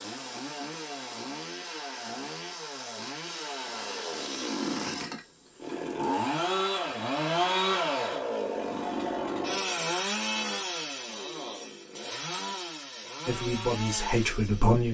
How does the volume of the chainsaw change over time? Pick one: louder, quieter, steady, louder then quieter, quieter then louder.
louder then quieter.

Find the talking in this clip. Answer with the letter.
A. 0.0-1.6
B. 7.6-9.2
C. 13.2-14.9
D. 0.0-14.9
C.